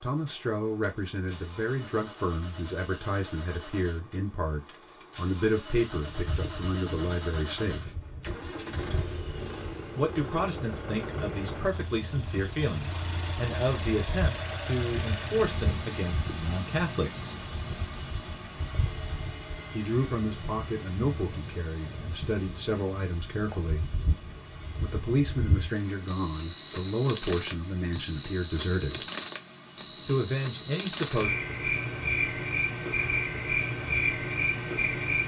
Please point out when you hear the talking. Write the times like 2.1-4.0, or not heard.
0.0-8.0, 9.9-17.4, 19.7-23.9, 24.8-29.1, 30.1-31.4.